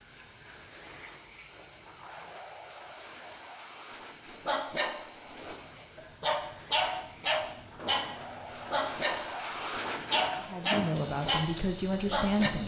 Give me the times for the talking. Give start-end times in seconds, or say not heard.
10.4-12.6.